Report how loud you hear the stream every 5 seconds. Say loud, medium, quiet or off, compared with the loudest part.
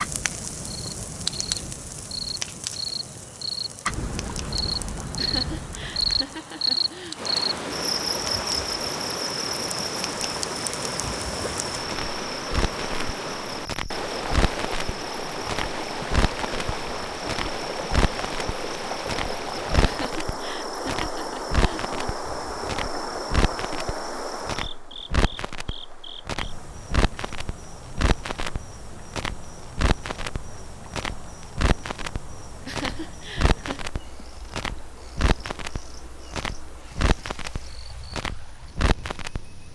off, loud, loud, loud, loud, quiet, quiet, quiet.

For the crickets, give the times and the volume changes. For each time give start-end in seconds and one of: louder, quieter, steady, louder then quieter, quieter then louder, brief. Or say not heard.
0.0-39.7 quieter.